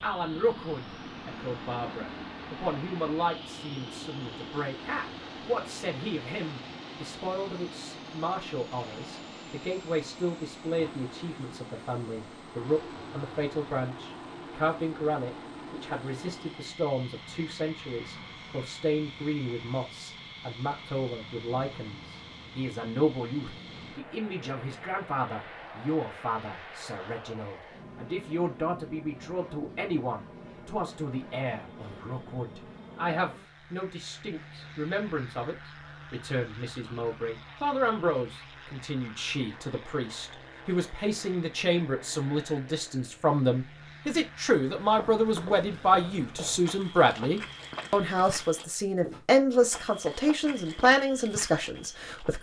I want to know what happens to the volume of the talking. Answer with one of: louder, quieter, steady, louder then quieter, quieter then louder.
louder.